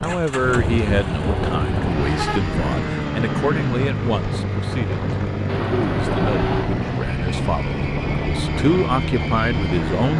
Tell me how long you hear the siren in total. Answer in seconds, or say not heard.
not heard.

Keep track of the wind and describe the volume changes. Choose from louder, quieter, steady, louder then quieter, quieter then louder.
steady.